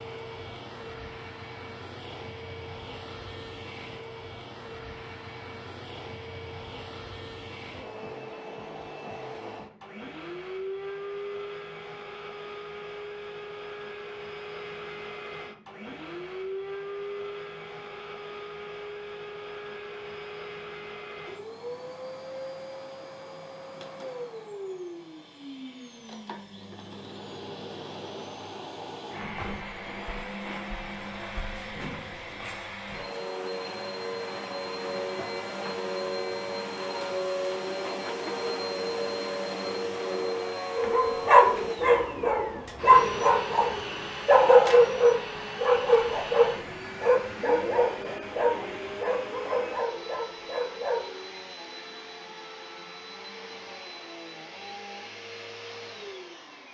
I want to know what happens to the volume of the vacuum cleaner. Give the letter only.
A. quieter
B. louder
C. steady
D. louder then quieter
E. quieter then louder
D.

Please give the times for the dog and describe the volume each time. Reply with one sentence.
The dog can be heard from 40.8 to 51.1 s, getting quieter.